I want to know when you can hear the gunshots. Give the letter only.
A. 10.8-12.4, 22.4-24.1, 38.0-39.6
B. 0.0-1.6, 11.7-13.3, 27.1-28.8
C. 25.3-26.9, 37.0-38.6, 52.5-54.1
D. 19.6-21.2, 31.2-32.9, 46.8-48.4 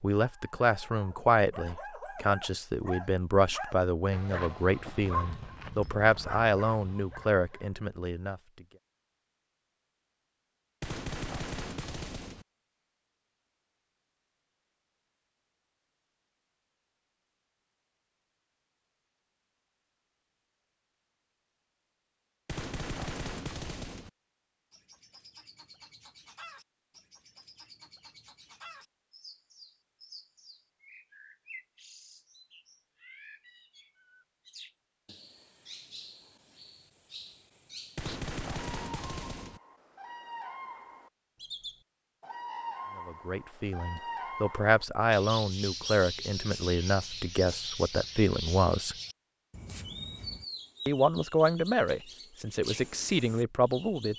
A.